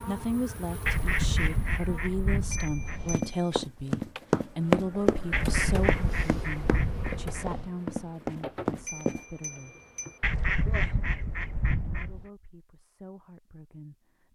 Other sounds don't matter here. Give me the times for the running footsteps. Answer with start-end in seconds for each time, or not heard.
3.1-9.2.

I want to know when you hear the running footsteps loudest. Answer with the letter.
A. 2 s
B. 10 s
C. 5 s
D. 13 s
C.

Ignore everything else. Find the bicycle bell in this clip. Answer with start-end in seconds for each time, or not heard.
2.5-3.5, 8.8-10.2.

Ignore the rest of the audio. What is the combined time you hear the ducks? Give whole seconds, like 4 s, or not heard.
7 s.